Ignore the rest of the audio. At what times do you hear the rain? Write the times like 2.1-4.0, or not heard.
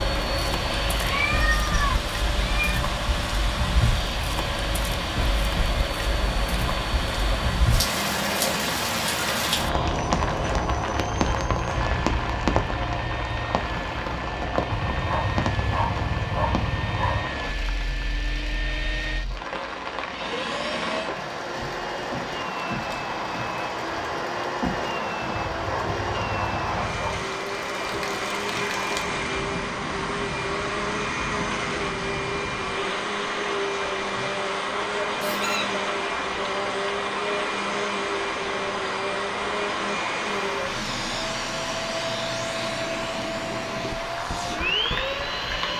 0.0-45.7.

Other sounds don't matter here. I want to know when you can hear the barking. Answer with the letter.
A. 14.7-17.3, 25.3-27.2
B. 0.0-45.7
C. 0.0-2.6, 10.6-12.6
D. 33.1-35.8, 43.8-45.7
A.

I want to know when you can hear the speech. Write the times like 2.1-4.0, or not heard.
not heard.